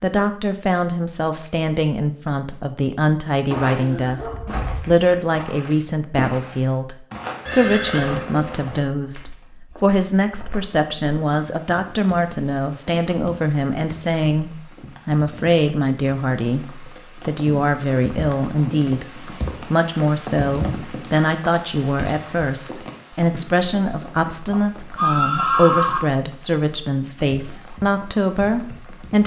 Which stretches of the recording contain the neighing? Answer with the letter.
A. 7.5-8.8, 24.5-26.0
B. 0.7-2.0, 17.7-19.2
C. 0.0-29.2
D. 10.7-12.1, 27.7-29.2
A.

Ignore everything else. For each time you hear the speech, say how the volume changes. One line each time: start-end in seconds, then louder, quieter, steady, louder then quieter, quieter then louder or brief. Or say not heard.
0.0-29.2 steady.